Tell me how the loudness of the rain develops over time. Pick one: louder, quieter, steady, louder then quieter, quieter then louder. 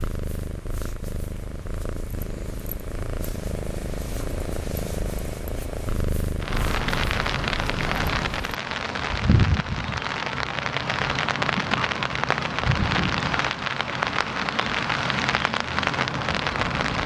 steady.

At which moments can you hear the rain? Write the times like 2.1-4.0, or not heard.
6.4-17.0.